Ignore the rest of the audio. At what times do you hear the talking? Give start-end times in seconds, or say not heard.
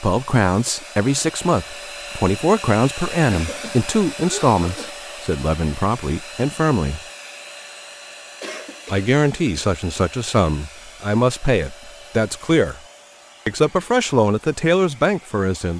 0.0-7.0, 8.9-12.8, 13.4-15.7.